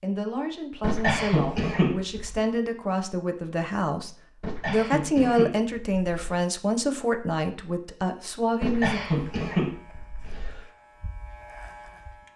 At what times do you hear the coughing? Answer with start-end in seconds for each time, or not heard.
0.8-2.4, 4.4-6.5, 8.6-10.7.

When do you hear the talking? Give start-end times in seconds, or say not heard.
0.0-4.1, 4.7-9.0.